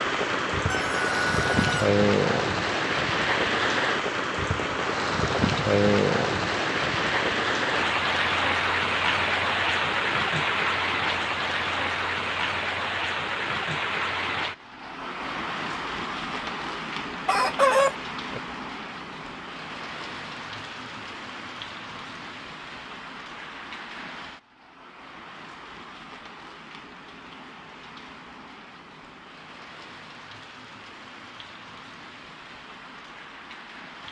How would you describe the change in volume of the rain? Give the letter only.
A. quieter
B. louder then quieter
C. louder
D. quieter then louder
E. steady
A.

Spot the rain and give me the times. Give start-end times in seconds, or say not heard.
0.0-34.0.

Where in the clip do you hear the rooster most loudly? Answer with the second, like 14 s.
18 s.